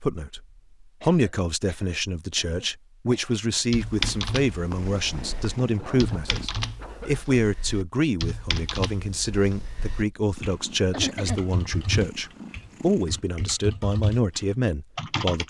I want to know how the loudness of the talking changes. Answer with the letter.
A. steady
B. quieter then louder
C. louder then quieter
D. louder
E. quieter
A.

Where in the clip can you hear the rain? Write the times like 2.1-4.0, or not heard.
not heard.